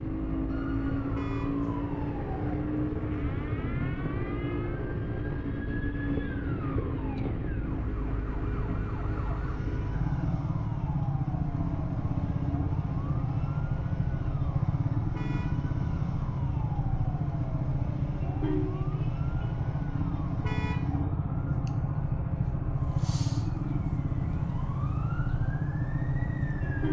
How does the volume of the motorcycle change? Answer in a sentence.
The volume of the motorcycle stays about the same.